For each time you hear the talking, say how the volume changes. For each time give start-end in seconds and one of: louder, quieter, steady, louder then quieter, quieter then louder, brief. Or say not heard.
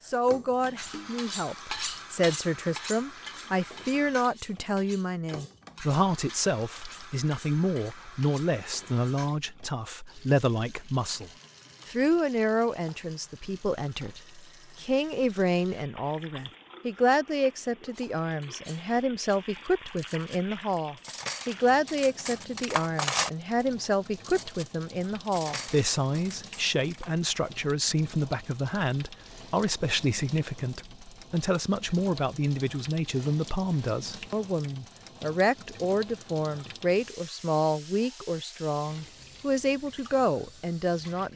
0.1-41.3 steady.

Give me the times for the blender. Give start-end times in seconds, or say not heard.
not heard.